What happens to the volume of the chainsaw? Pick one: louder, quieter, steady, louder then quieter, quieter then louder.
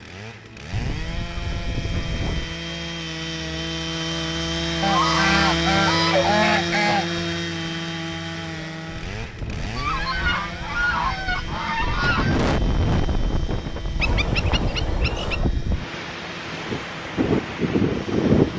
louder then quieter.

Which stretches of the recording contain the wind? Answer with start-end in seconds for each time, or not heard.
8.8-18.5.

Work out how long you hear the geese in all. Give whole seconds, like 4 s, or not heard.
8 s.